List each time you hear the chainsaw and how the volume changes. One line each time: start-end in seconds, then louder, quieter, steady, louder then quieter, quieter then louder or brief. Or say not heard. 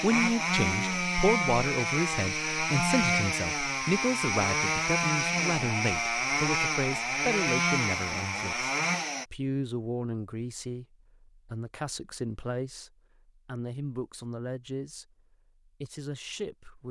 0.0-9.2 steady.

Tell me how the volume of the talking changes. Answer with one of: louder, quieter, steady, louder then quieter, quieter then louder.
quieter.